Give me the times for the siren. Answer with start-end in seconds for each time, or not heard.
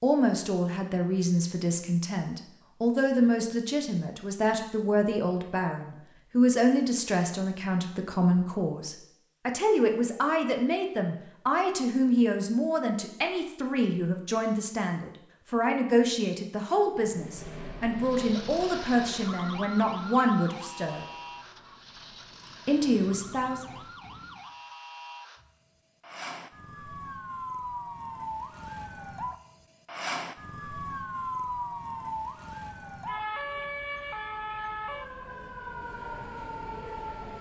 18.0-37.3.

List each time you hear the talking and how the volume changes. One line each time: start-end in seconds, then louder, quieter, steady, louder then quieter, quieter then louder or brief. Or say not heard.
0.0-21.1 steady
22.6-23.6 brief.